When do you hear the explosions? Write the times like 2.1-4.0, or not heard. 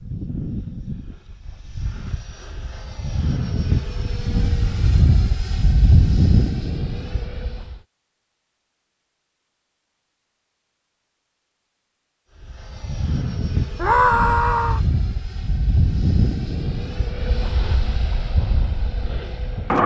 not heard.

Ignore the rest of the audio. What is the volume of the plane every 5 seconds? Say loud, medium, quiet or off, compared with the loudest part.
medium, loud, medium, loud.